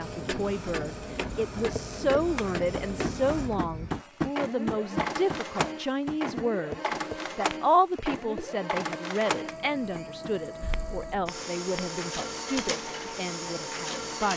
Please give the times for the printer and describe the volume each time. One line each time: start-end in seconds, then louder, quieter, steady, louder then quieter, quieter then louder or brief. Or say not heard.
0.0-14.3 steady.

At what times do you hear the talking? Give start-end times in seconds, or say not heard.
0.0-14.3.